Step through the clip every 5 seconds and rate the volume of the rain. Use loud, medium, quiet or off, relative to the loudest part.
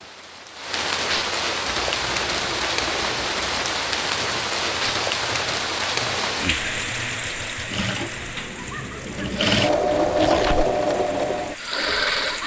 loud, loud, medium.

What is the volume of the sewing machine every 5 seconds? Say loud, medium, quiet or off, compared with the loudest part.
quiet, medium, loud.